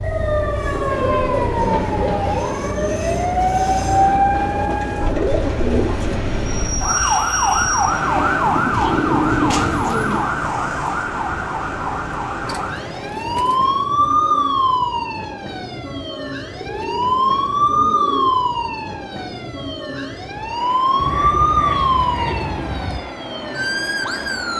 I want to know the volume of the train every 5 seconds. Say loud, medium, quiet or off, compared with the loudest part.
loud, loud, medium, medium, medium.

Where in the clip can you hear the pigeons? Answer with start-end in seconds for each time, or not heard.
0.8-2.5, 4.7-6.2, 8.4-10.3, 12.4-14.5, 16.6-18.4, 20.9-23.0.